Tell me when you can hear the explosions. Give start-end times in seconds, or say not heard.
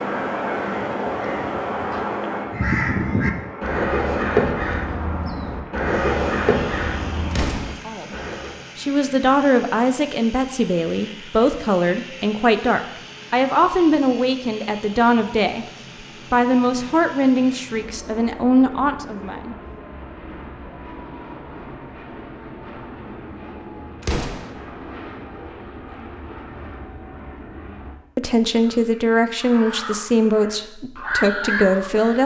7.3-7.8, 24.0-24.5.